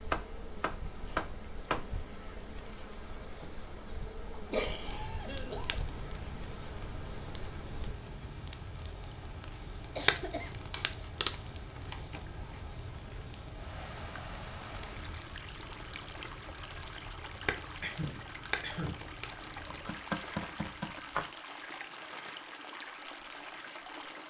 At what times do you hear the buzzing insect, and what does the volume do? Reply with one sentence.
The buzzing insect can be heard from 0.0 to 8.0 s, at a steady volume.